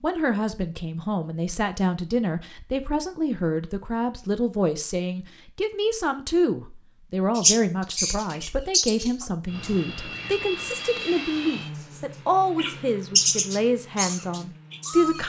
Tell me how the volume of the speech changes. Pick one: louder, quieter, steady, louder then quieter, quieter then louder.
steady.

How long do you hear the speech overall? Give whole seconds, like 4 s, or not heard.
15 s.